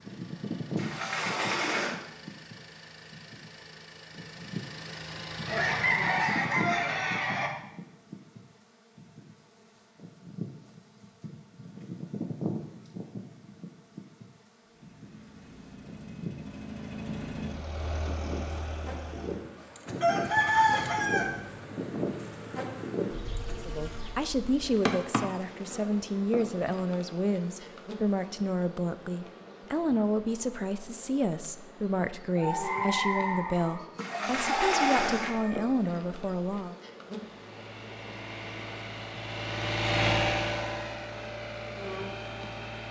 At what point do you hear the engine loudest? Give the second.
40 s.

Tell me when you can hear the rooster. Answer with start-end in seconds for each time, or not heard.
5.5-7.5, 20.0-21.3, 32.4-35.7.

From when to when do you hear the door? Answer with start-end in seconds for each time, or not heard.
0.8-1.9, 34.0-35.4.